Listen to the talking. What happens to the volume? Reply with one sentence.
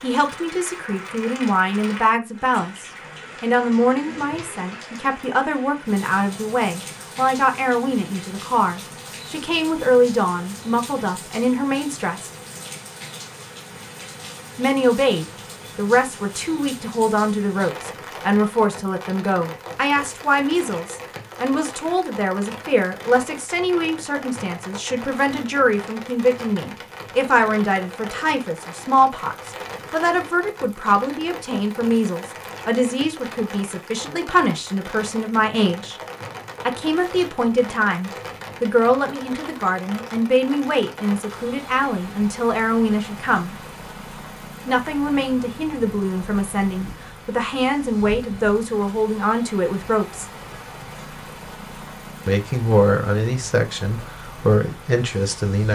The loudness of the talking stays about the same.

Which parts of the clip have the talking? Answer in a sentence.
You can hear the talking from 0.0 to 12.3 s, from 14.6 to 36.0 s, from 36.6 to 43.5 s, from 44.6 to 50.2 s and from 52.2 to 55.7 s.